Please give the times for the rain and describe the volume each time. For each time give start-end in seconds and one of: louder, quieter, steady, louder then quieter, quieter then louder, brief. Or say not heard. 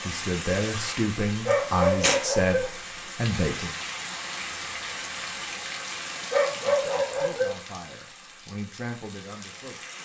0.0-10.0 quieter.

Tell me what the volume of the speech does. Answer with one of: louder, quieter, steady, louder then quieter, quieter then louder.
quieter.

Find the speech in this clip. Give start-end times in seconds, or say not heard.
0.1-3.8, 6.7-9.8.